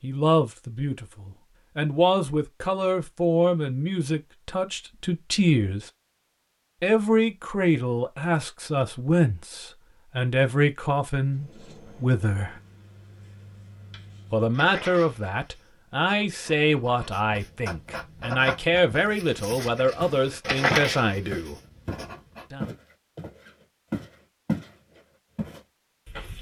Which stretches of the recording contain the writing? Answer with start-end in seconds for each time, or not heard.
11.2-22.4.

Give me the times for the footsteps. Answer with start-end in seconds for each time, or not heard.
19.9-24.7, 25.4-26.3.